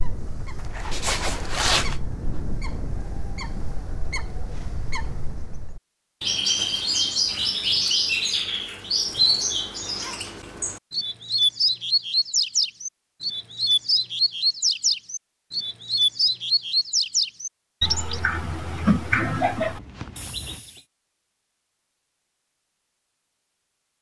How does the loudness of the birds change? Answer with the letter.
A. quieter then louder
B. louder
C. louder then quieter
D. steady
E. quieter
B.